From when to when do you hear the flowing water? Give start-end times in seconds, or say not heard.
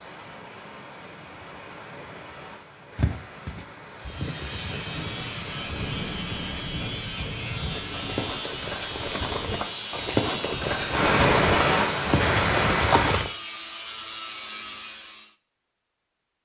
0.0-13.2.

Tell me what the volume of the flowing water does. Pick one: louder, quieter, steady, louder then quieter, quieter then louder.
louder.